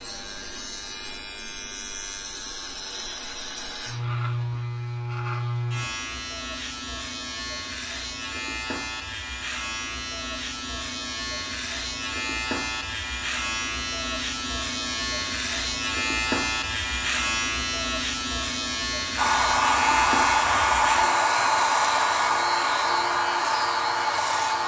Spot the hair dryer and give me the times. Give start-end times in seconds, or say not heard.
19.1-24.6.